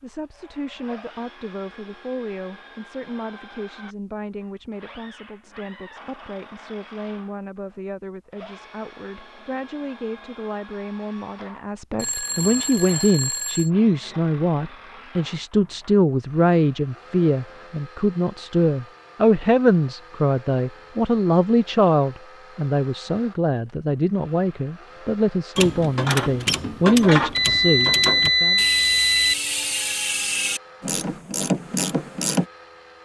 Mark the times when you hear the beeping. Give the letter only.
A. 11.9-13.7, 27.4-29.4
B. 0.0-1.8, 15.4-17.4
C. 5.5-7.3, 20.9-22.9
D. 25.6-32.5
A.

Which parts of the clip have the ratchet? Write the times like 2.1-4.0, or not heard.
25.6-32.5.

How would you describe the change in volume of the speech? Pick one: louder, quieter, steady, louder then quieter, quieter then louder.
louder.